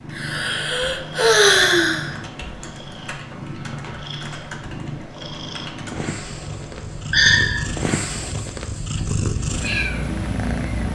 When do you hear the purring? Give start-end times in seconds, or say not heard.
0.0-10.8.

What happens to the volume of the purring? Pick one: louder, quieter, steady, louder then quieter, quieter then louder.
louder.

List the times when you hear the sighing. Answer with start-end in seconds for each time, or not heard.
0.1-2.1, 7.1-7.7.